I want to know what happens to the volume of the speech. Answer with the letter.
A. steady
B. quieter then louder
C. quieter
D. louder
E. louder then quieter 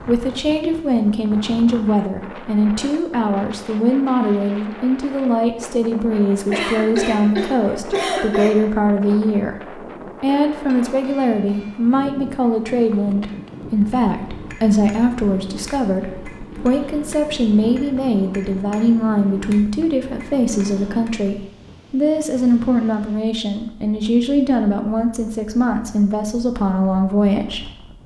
A.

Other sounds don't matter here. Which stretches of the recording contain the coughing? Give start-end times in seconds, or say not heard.
6.5-8.6.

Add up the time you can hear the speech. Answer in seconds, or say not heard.
28 s.